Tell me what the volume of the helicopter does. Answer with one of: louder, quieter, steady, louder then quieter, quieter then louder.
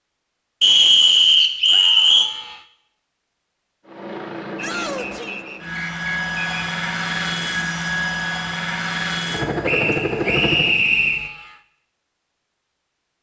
louder.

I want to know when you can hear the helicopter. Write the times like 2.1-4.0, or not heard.
3.9-10.8.